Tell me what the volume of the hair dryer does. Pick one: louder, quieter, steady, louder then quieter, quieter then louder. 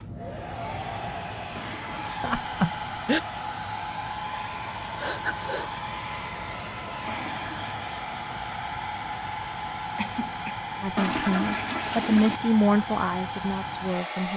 steady.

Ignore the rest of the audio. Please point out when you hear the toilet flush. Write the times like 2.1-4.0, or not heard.
1.6-2.1, 7.0-7.8, 10.9-12.4.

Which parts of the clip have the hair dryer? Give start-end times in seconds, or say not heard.
0.0-14.3.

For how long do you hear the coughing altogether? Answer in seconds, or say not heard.
2 s.